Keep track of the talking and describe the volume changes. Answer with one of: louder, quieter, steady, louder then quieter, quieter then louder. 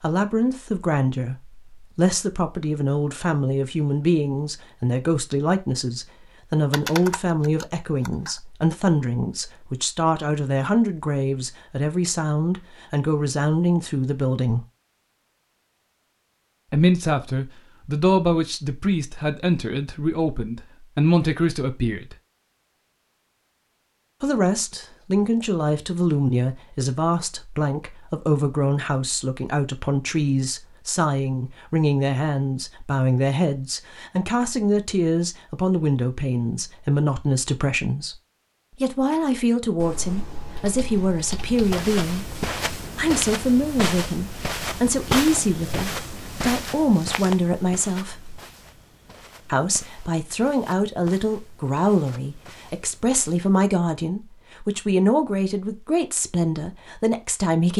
steady.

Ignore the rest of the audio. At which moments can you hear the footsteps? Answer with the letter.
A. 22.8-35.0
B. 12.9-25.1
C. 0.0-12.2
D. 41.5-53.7
D.